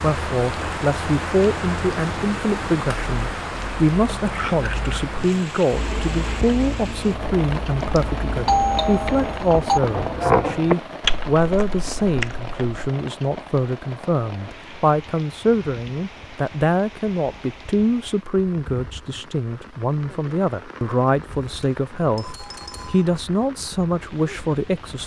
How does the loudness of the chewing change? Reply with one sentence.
The volume of the chewing goes up.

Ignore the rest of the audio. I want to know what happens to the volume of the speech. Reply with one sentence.
The loudness of the speech stays about the same.